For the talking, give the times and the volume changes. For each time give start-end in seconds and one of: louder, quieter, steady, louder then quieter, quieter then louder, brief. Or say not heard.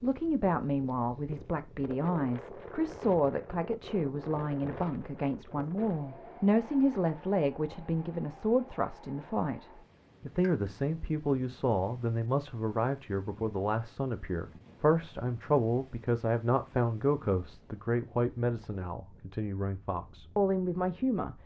0.0-21.4 steady.